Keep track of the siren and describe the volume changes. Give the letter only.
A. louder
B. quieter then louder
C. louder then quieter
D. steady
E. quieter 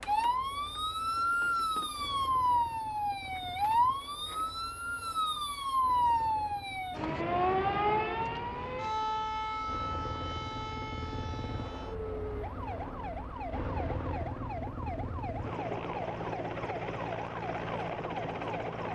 E.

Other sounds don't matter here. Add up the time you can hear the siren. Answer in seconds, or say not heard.
19 s.